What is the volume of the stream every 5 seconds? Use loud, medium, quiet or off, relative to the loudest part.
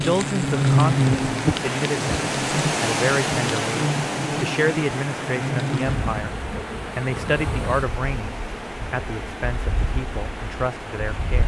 loud, medium, medium.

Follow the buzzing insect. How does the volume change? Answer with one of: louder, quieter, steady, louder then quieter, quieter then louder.
quieter.